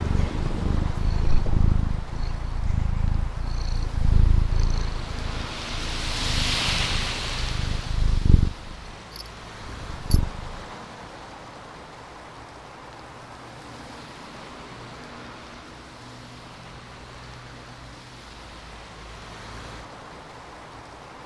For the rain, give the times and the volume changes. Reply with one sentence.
The rain can be heard from 0.0 to 21.2 s, getting louder then quieter.